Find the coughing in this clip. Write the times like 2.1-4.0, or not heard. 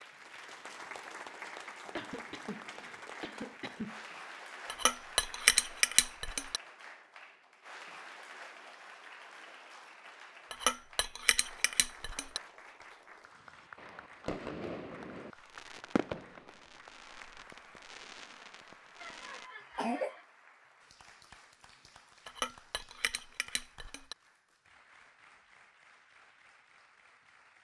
1.9-4.0, 19.0-20.2.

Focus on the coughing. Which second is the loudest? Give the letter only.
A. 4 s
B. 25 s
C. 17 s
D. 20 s
D.